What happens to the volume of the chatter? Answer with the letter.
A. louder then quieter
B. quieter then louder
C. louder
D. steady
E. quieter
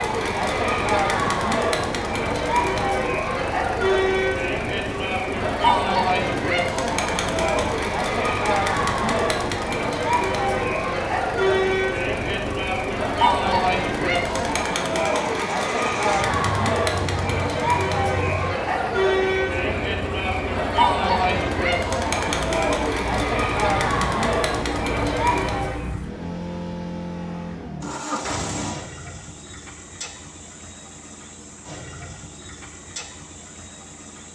D.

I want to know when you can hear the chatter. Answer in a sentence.
You can hear the chatter from 0.0 to 25.9 s.